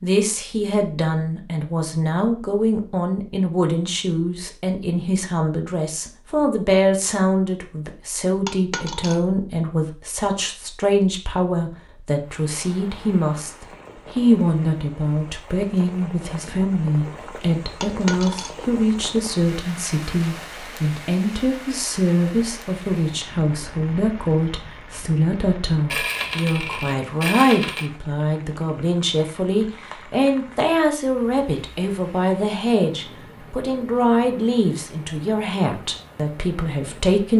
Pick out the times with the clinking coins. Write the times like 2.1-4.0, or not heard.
8.4-9.2, 17.8-18.5, 25.9-27.9.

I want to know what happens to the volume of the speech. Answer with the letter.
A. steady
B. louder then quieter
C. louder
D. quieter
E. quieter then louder
A.